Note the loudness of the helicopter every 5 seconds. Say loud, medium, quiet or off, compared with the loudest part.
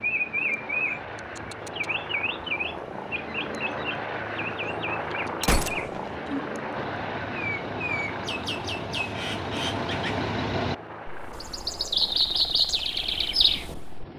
loud, loud, medium.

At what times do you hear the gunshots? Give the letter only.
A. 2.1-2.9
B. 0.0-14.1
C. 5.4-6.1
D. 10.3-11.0
C.